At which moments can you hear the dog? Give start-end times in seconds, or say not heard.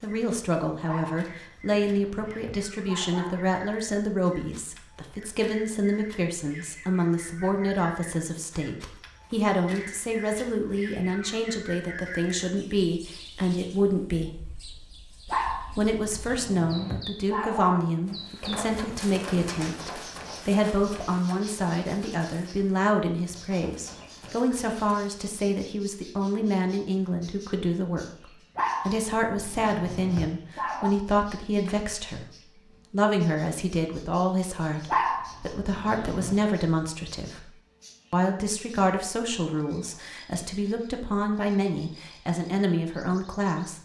0.8-3.5, 15.2-17.9, 28.6-30.9, 34.9-36.4.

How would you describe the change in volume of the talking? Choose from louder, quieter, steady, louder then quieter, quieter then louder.
steady.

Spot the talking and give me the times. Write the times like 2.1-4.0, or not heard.
0.0-14.3, 15.8-37.5, 38.1-43.7.